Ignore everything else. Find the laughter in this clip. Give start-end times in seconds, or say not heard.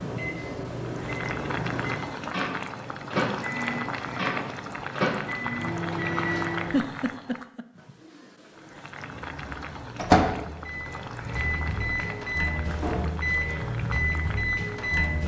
6.7-7.7.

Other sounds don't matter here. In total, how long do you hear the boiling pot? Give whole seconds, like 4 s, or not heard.
15 s.